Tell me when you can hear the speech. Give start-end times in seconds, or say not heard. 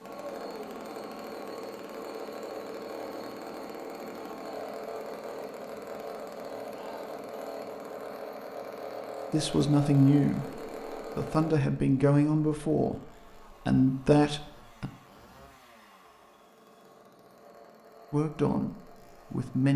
9.3-10.4, 11.2-13.0, 13.7-14.9, 18.1-19.7.